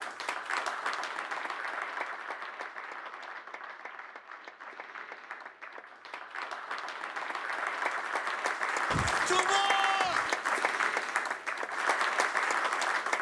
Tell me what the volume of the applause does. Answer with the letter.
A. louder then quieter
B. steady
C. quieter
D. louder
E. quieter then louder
E.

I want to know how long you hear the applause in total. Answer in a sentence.
The applause can be heard for 13 seconds in total.